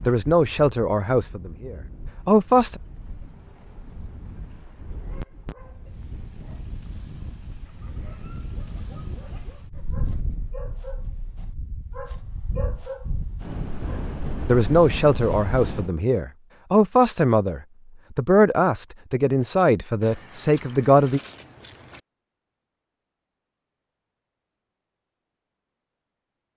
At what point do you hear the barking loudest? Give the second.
13 s.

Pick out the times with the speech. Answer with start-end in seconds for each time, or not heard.
0.1-2.8, 14.4-21.2.